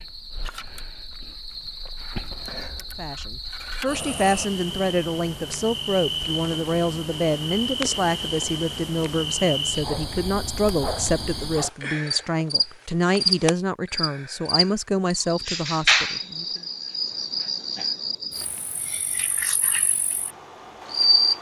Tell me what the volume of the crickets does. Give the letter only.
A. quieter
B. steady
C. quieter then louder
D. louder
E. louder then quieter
E.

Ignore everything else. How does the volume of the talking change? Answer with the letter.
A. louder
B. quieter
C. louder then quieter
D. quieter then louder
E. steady
E.